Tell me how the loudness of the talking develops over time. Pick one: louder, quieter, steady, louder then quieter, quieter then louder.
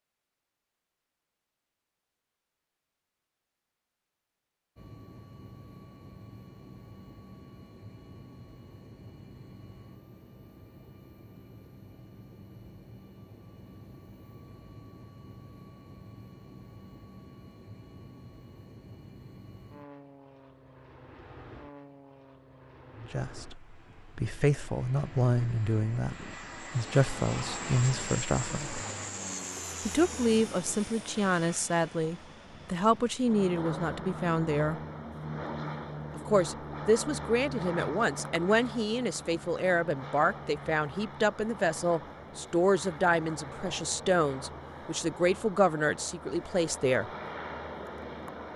steady.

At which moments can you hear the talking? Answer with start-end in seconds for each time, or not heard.
23.0-28.8, 29.9-34.8, 36.1-47.1.